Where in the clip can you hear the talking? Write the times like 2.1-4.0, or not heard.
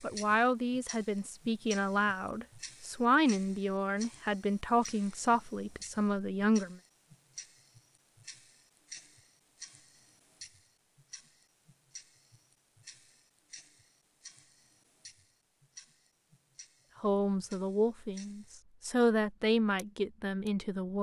0.0-6.8, 17.0-20.9.